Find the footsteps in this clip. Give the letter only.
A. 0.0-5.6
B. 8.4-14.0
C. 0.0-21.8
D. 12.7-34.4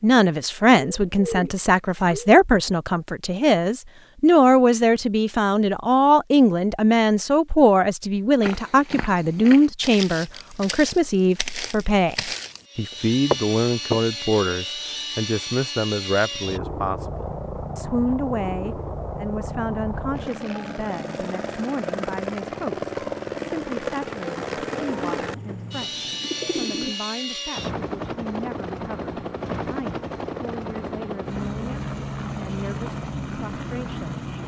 B.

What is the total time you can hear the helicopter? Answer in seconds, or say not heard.
22 s.